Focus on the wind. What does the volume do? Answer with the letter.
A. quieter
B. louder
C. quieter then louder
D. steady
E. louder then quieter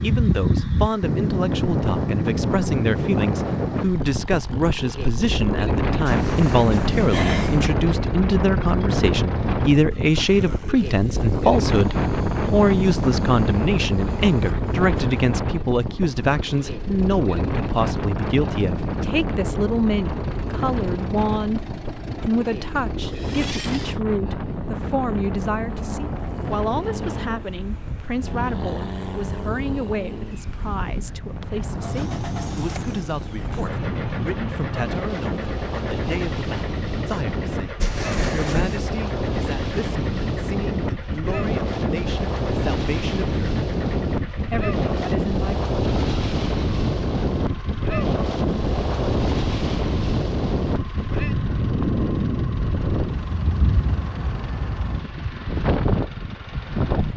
C.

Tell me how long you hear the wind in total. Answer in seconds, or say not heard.
57 s.